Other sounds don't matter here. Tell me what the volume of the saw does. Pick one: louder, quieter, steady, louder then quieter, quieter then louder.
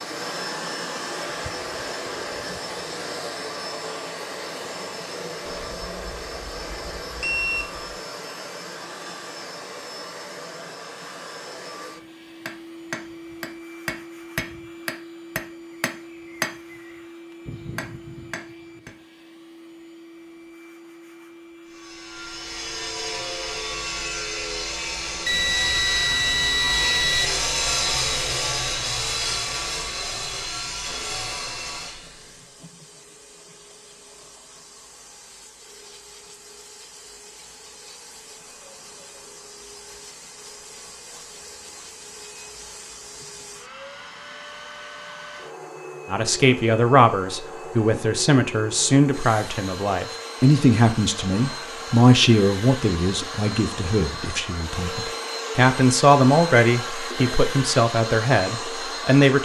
louder then quieter.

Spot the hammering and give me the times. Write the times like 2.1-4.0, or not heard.
11.9-18.9.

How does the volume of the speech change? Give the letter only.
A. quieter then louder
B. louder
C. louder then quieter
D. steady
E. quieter
D.